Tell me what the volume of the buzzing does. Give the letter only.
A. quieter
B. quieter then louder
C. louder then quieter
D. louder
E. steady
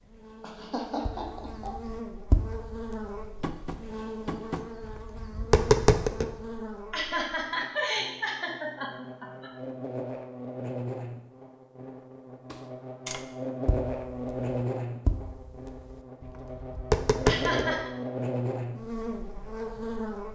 D.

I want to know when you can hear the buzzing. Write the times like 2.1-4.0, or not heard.
0.0-20.3.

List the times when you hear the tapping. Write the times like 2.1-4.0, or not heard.
1.1-6.3, 12.5-17.8.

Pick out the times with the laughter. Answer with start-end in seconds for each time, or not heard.
0.4-1.9, 6.9-9.5, 17.2-17.9.